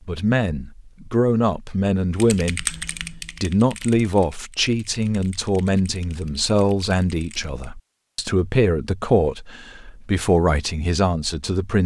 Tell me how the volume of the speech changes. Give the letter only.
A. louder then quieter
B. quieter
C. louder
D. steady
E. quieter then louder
D.